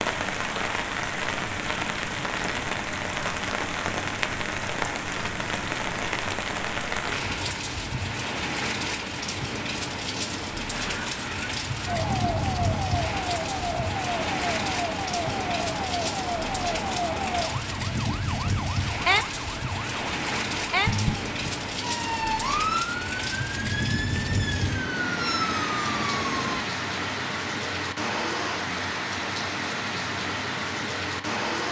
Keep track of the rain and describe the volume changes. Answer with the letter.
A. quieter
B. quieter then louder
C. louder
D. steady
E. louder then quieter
D.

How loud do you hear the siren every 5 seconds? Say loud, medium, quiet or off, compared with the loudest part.
off, off, loud, loud, loud, loud, off.